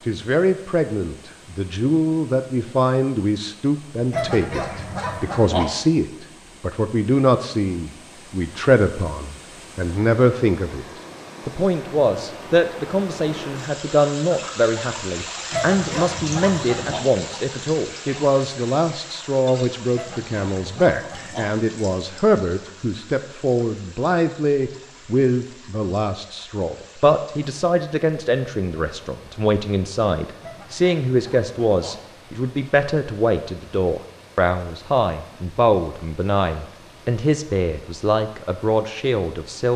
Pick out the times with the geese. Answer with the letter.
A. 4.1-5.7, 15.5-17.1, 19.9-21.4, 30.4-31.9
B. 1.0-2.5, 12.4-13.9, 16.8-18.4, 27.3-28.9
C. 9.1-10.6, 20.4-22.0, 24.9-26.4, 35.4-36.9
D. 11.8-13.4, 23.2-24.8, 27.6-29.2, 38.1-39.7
A.